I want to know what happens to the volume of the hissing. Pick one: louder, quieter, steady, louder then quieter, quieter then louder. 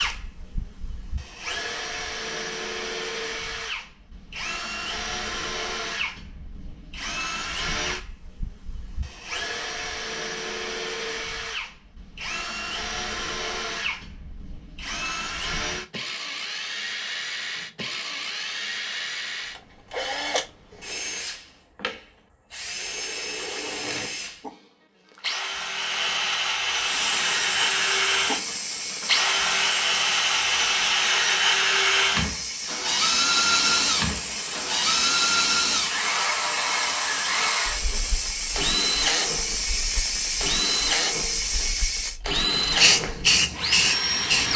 louder.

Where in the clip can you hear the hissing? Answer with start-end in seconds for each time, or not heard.
26.8-44.5.